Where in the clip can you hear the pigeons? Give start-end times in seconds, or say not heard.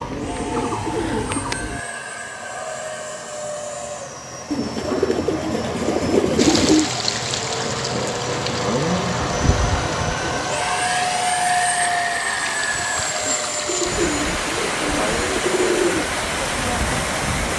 0.0-1.8, 4.5-6.9, 9.2-10.3, 13.7-16.1.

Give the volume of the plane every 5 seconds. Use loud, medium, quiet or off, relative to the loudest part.
medium, loud, loud, medium.